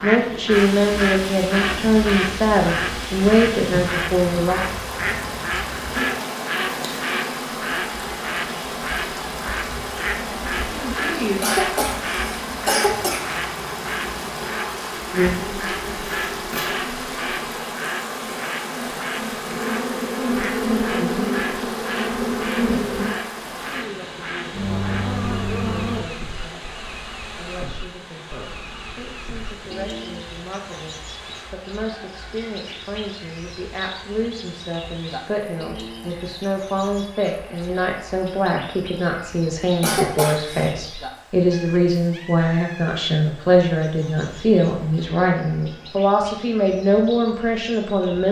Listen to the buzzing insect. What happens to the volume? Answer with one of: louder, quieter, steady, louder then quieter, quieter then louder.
louder.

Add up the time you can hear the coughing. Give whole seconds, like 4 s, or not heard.
3 s.